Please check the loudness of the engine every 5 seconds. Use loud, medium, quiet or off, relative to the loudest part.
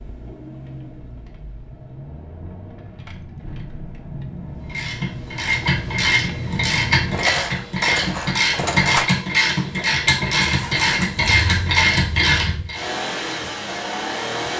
medium, loud, loud.